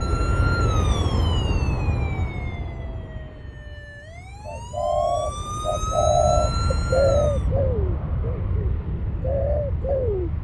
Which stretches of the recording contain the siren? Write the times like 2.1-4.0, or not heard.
0.0-7.5.